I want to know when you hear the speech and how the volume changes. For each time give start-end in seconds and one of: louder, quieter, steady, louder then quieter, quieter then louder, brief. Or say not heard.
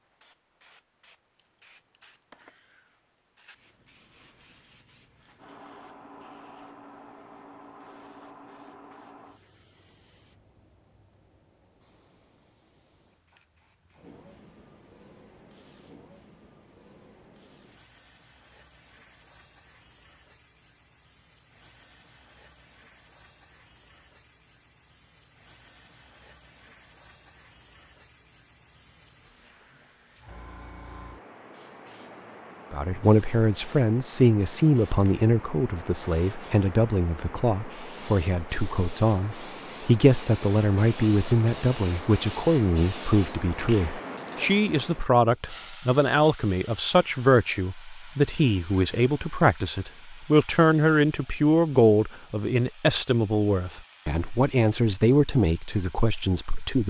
32.7-56.8 steady.